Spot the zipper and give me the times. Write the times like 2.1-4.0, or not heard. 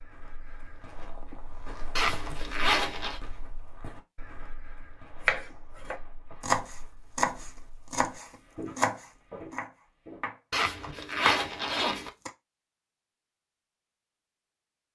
1.9-3.2, 10.5-12.1.